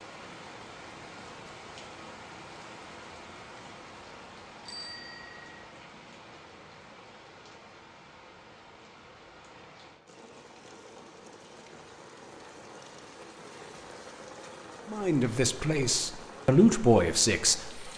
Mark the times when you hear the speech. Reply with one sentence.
The speech can be heard from 14.9 to 17.8 s.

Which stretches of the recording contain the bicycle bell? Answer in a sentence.
The bicycle bell can be heard from 4.7 to 5.5 s.